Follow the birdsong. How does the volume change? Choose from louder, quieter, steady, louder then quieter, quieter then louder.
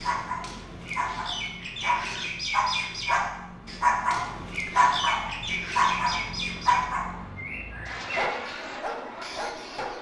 quieter.